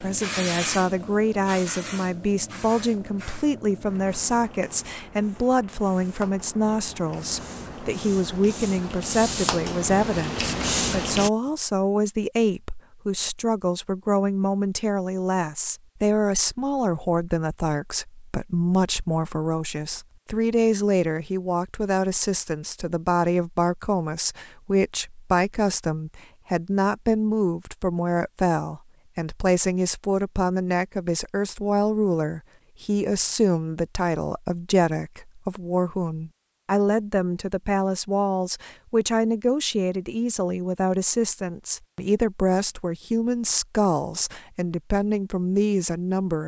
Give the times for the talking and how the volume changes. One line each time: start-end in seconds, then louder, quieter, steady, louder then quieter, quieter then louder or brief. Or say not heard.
0.0-46.4 steady.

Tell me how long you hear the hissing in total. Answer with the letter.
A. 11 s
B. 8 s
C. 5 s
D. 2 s
A.